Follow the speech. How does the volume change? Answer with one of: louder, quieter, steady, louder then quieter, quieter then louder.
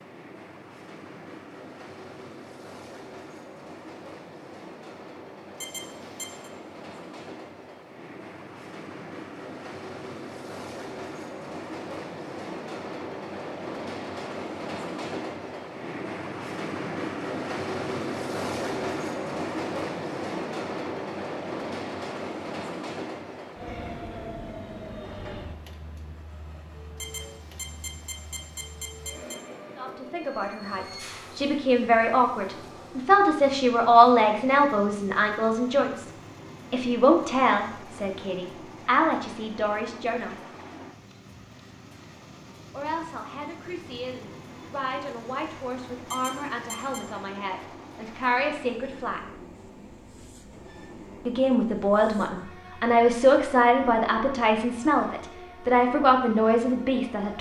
quieter then louder.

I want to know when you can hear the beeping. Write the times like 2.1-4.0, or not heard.
5.5-6.5, 26.9-29.4, 46.0-47.0.